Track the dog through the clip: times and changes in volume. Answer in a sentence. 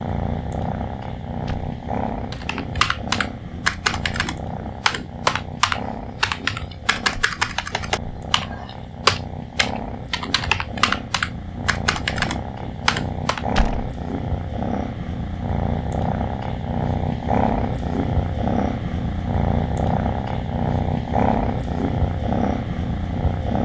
The dog can't be heard in this clip.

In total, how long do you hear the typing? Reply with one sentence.
The typing can be heard for 11 seconds in total.